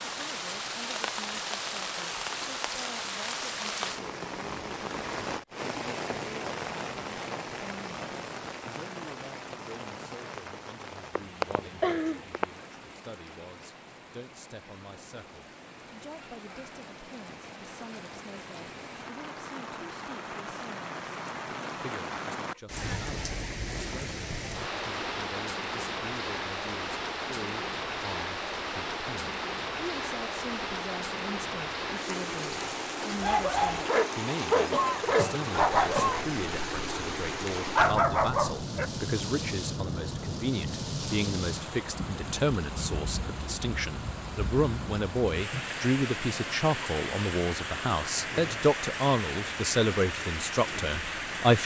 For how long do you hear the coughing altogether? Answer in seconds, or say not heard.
3 s.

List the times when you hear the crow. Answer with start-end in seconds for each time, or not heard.
not heard.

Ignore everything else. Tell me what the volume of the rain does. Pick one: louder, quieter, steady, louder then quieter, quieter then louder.
quieter then louder.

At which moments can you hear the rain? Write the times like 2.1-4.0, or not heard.
0.0-51.6.